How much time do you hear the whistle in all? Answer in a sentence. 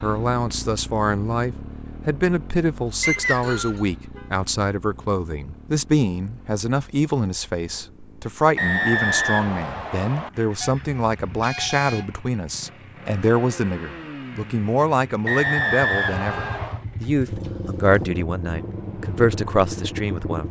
The whistle can be heard for 4 seconds in total.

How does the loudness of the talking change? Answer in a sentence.
The loudness of the talking stays about the same.